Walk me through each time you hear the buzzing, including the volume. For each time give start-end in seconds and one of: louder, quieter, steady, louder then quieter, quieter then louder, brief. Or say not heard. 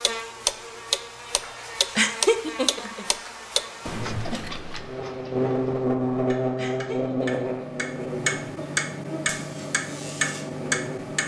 0.0-11.2 louder then quieter.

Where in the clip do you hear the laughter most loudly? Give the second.
2 s.